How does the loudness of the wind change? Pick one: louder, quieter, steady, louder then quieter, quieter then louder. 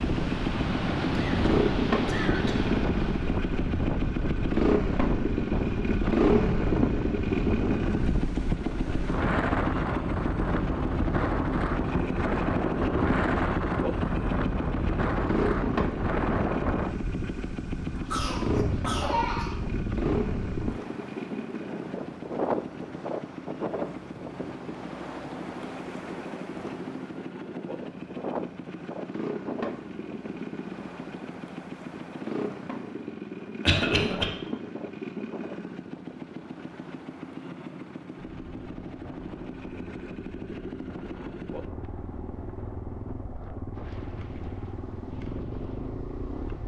quieter.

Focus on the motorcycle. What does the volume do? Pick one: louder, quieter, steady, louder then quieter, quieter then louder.
quieter.